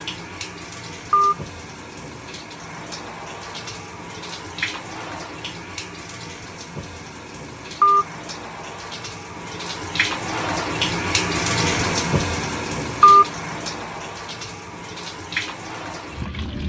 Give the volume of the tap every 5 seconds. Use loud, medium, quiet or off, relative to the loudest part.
medium, medium, loud, medium.